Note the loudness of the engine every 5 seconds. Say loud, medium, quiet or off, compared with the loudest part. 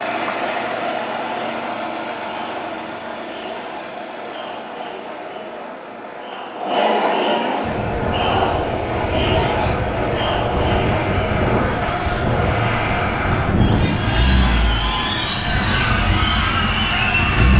loud, medium, loud, loud.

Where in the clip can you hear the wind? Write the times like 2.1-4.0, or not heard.
7.6-17.5.